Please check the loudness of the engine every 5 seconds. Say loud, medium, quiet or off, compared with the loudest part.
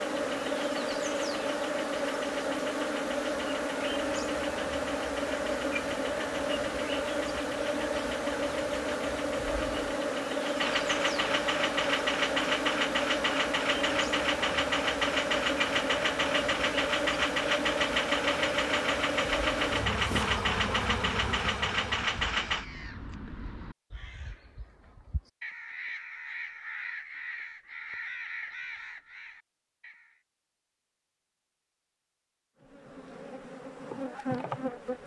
quiet, quiet, loud, loud, loud, off, off.